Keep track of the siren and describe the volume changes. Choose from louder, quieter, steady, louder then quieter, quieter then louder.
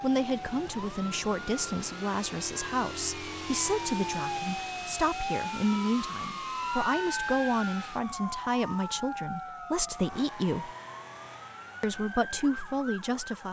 louder then quieter.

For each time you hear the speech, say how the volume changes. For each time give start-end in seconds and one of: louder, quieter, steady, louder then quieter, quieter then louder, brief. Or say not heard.
0.0-10.7 steady
11.8-13.4 brief.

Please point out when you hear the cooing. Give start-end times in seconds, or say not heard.
not heard.